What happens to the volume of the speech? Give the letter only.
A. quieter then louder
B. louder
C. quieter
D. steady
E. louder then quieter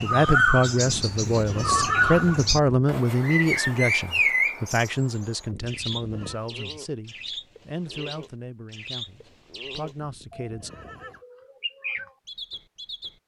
C.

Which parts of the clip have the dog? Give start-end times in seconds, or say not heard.
not heard.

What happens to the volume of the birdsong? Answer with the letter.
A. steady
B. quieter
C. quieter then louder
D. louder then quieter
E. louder
B.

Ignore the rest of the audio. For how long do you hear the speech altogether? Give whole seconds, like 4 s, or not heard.
11 s.